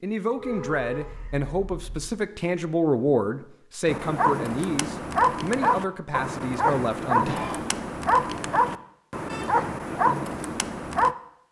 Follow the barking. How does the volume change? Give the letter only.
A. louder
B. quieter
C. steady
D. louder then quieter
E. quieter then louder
C.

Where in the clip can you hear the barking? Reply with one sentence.
The barking can be heard from 3.9 to 11.1 s.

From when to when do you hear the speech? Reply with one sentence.
The speech can be heard from 0.0 to 7.3 s.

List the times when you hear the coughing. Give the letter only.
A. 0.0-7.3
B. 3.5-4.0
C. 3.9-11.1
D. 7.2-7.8
D.